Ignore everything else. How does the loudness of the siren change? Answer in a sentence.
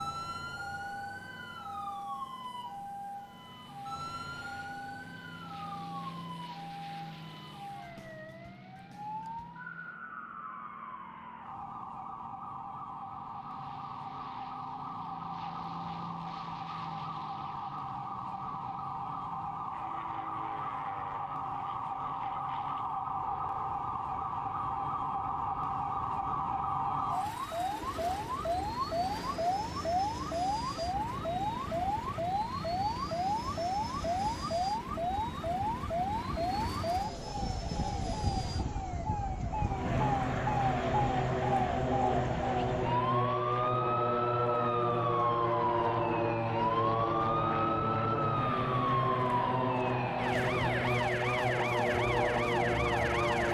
The volume of the siren goes up.